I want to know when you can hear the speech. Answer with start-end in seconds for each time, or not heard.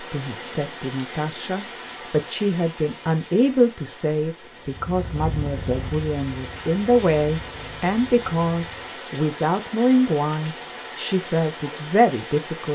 0.0-12.7.